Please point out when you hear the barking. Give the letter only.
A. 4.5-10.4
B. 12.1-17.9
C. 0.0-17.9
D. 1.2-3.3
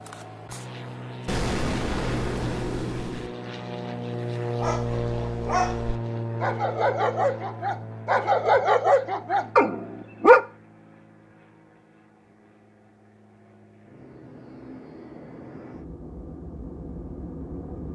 A.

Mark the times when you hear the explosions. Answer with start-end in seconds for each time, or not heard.
1.2-3.3.